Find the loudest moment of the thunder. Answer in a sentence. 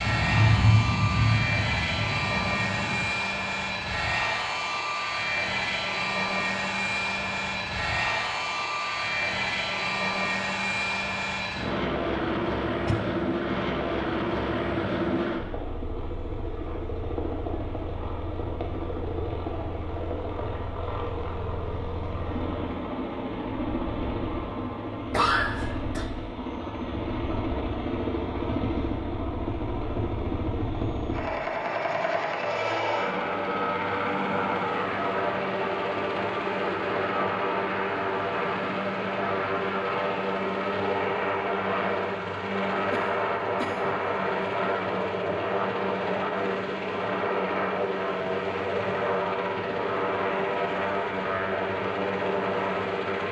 The loudest moment of the thunder is at 1 second.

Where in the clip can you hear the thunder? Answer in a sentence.
The thunder can be heard from 0.0 to 3.0 s.